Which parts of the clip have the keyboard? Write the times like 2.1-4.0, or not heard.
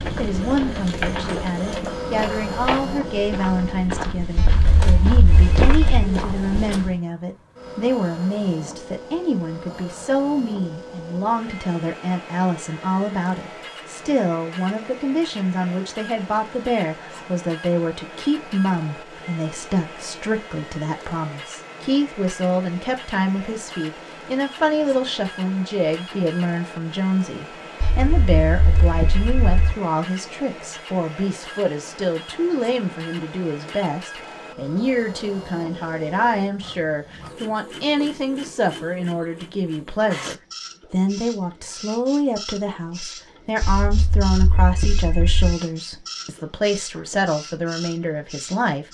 not heard.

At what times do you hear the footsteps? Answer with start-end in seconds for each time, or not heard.
0.0-7.0.